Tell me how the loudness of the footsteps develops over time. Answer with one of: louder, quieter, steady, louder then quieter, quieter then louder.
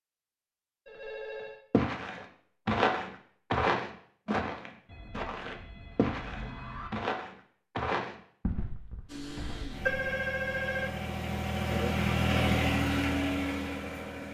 quieter.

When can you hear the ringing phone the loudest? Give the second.
10 s.